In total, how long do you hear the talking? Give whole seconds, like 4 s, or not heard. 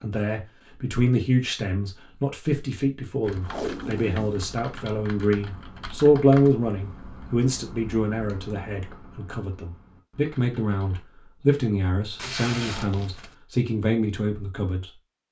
15 s.